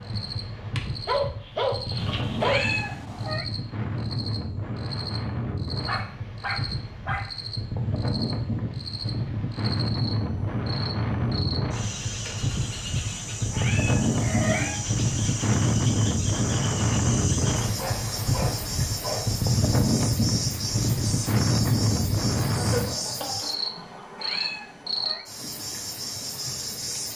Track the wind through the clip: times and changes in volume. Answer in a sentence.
The wind can be heard from 0.0 to 23.0 s, getting louder.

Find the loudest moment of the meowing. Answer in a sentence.
The volume of the meowing peaks at 3 seconds.